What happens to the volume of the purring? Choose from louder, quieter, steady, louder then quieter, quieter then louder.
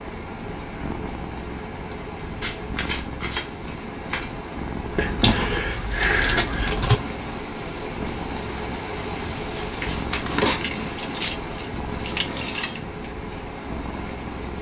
steady.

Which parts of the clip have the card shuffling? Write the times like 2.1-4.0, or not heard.
2.4-4.3, 9.6-10.3.